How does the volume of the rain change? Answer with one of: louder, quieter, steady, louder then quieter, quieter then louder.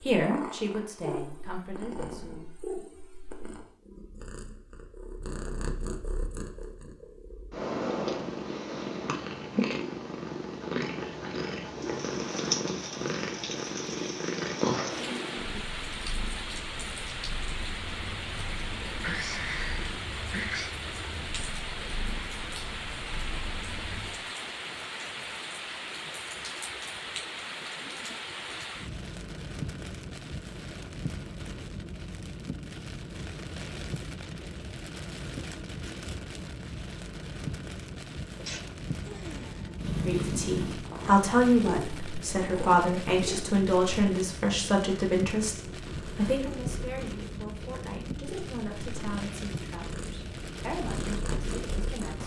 steady.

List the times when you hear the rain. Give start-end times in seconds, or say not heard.
11.7-52.2.